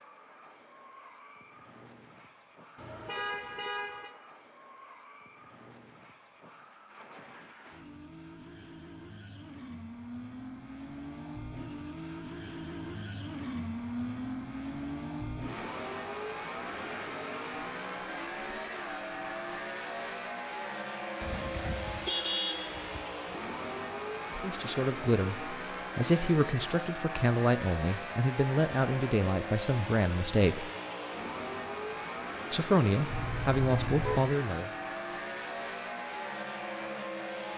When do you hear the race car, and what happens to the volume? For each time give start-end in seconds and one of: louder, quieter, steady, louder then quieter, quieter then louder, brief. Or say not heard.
0.0-37.5 louder.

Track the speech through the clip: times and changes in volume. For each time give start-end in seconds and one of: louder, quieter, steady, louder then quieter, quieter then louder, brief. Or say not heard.
24.4-30.7 steady
32.5-34.7 brief.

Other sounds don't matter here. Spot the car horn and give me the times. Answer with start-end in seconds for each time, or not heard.
2.8-4.2, 21.2-23.0, 33.0-34.4.